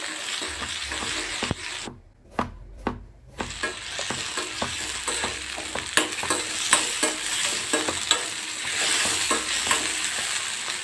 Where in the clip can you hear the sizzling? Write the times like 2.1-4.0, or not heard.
0.0-1.9, 3.4-10.7.